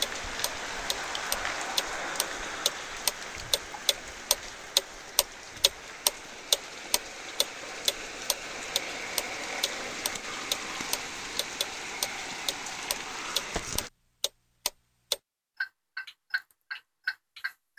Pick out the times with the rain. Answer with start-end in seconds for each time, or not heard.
0.0-13.9.